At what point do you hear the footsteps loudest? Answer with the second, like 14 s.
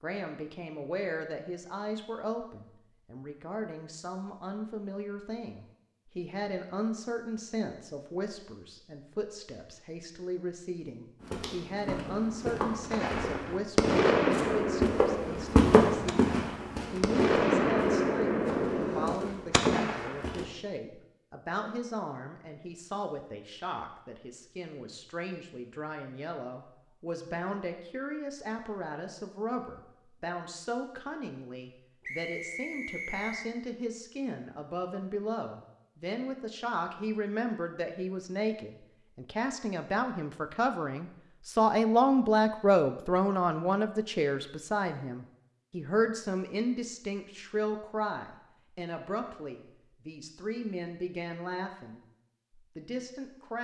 16 s.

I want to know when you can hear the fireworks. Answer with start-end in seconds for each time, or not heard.
12.9-20.3.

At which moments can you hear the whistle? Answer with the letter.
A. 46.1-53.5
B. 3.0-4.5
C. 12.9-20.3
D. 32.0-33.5
D.